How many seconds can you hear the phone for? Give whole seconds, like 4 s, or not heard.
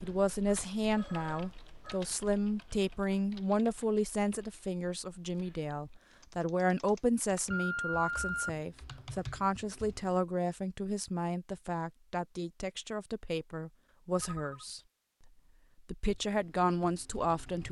3 s.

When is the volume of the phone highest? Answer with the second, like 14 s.
8 s.